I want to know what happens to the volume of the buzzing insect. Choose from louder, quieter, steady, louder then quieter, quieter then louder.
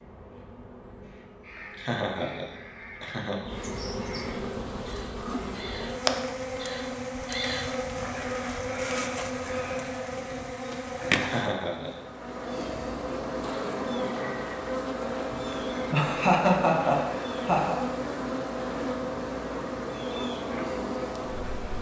louder.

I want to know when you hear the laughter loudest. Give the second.
16 s.